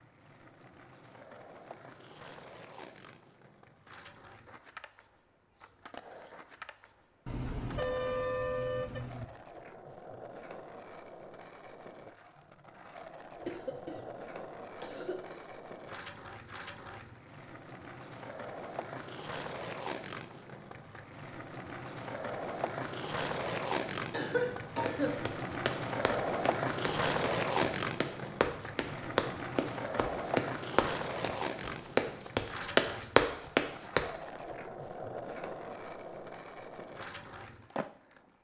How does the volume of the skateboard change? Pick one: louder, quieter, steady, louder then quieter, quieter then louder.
louder then quieter.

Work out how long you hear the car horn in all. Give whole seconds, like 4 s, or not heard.
2 s.